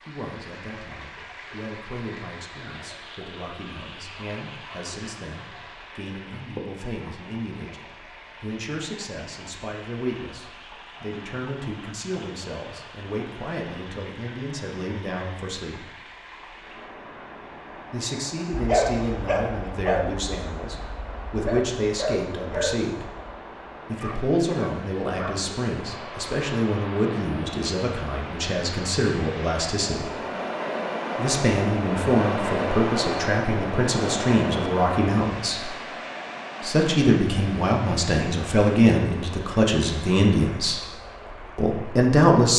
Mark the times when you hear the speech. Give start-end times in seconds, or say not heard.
0.0-15.8, 17.9-23.1, 23.9-30.1, 31.1-35.8, 36.6-40.9, 41.5-42.5.